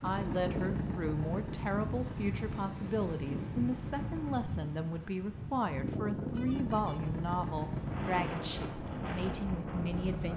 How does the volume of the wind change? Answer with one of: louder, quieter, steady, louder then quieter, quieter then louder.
steady.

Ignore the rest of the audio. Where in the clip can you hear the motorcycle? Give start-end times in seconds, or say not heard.
0.0-4.3, 6.5-10.3.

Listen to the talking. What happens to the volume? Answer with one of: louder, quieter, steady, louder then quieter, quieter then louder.
steady.